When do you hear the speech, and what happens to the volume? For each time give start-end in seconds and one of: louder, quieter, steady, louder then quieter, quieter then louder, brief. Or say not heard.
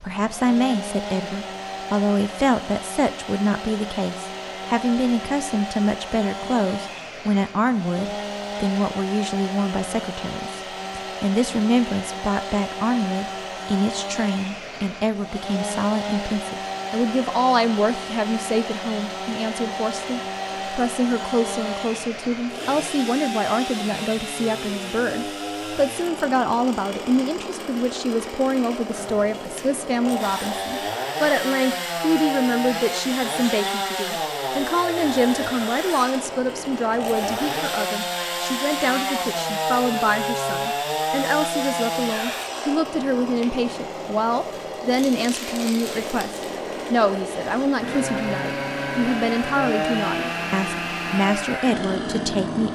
0.0-52.7 steady.